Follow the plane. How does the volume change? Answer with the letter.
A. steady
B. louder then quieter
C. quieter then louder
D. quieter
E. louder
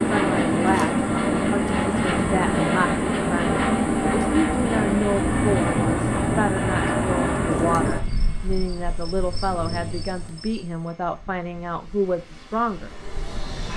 D.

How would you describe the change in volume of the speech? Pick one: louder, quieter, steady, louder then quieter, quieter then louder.
steady.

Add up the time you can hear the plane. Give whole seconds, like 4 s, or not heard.
14 s.